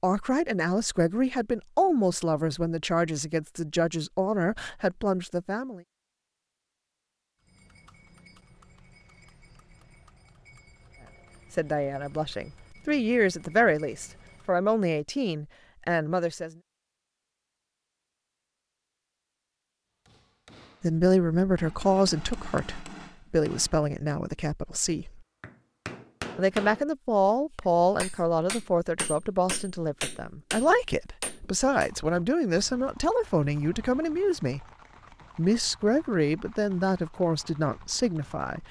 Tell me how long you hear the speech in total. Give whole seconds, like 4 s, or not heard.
27 s.